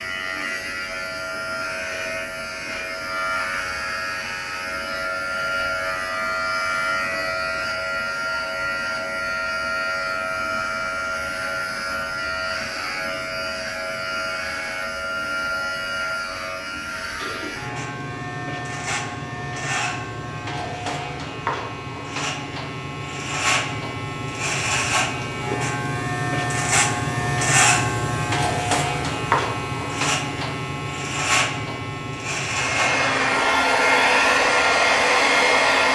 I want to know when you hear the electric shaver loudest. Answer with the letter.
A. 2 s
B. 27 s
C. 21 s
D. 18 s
B.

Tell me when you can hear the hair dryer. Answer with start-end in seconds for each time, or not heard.
32.5-35.8.